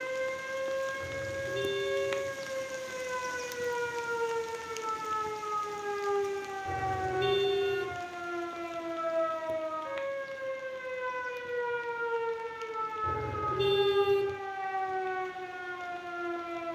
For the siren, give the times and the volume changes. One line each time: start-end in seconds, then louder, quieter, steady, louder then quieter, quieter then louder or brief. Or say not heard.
0.0-16.7 steady.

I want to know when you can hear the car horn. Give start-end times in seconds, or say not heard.
1.0-2.3, 6.7-8.0, 13.0-14.3.